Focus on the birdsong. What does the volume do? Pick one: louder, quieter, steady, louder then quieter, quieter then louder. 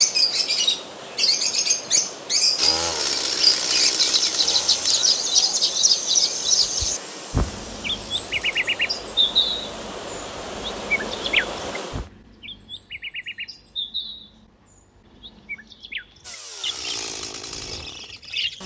quieter.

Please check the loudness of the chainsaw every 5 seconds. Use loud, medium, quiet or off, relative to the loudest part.
loud, quiet, off, medium.